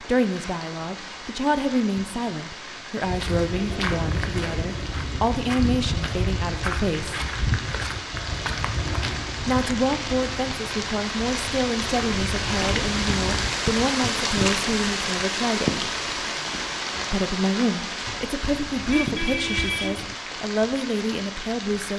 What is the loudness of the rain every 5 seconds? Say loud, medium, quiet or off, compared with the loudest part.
medium, medium, loud, loud, medium.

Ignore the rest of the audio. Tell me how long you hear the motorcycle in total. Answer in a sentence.
You can't hear the motorcycle here.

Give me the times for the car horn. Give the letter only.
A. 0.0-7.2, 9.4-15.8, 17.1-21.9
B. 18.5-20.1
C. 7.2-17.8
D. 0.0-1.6
B.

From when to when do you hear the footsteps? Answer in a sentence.
The footsteps can be heard from 3.0 to 13.6 s.